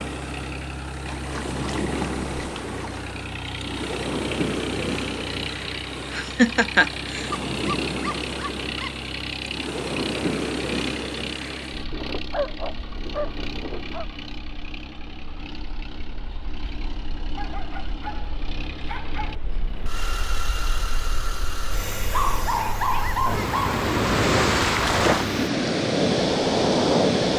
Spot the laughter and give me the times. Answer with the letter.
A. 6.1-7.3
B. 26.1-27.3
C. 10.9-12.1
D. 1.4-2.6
A.